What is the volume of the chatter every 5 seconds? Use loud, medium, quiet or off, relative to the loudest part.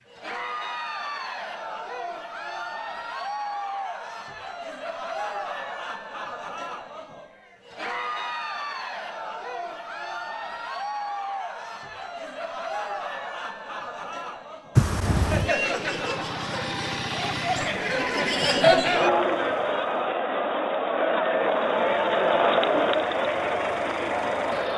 medium, medium, medium, loud, loud.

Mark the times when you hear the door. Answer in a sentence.
You can hear the door from 14.8 to 15.5 s.